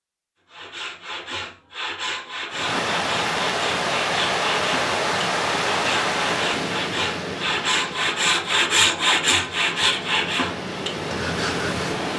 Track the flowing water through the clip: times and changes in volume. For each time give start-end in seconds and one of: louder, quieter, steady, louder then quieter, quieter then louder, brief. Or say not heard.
2.5-12.1 quieter then louder.